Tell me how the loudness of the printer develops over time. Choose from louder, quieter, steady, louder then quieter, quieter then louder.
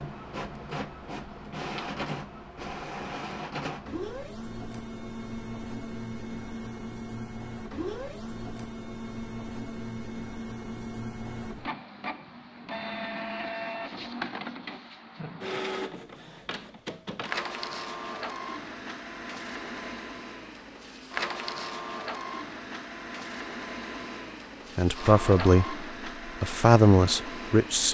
steady.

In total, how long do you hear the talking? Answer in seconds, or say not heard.
3 s.